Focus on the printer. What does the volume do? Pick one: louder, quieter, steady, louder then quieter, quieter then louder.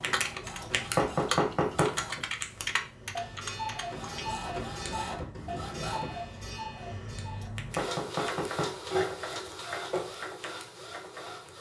louder.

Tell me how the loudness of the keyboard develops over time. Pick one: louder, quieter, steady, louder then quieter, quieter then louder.
louder then quieter.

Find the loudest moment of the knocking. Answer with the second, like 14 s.
1 s.